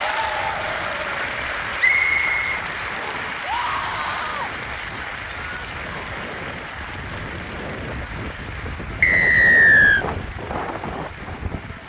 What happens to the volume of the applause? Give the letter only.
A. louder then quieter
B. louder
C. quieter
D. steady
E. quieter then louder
C.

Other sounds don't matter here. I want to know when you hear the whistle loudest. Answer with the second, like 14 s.
10 s.